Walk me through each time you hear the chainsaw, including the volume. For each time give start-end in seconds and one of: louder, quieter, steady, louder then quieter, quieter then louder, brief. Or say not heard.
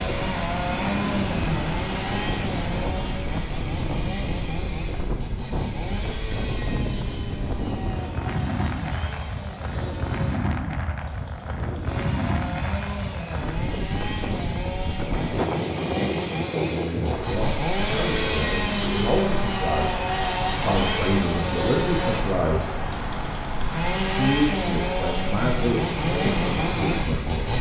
0.0-27.5 quieter then louder.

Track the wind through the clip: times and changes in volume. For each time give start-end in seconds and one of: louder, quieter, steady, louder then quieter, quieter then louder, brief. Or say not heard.
0.0-27.5 steady.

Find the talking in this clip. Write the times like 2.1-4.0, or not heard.
16.6-22.9, 24.1-27.5.